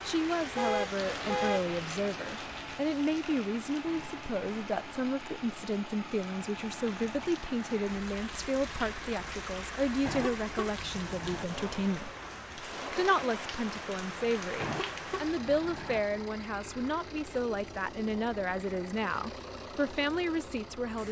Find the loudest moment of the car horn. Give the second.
1 s.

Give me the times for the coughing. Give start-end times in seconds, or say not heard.
not heard.